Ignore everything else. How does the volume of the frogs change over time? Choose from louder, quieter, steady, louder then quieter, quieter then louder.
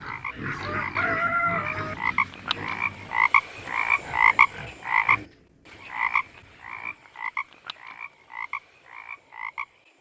louder then quieter.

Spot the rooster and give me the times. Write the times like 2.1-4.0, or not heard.
0.5-1.9.